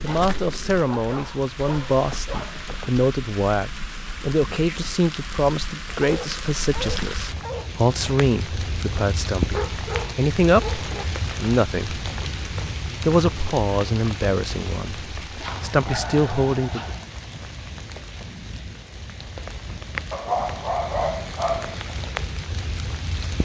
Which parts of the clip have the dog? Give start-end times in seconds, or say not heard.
0.1-2.6, 5.9-7.7, 9.5-11.1, 15.4-17.1, 20.1-21.8.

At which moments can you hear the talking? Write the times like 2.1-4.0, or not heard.
0.0-12.0, 13.0-16.9.